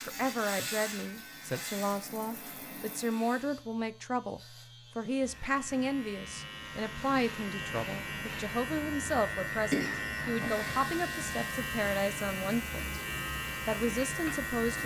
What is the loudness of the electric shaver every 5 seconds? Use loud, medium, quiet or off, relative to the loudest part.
medium, loud, loud.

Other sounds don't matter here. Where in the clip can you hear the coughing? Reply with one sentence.
You can hear the coughing from 9.7 to 10.8 s.